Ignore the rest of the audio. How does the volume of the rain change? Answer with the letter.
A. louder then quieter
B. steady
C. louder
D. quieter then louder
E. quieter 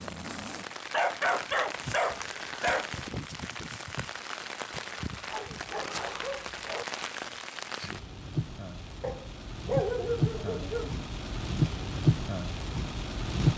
C.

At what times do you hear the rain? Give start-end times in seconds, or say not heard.
0.0-13.5.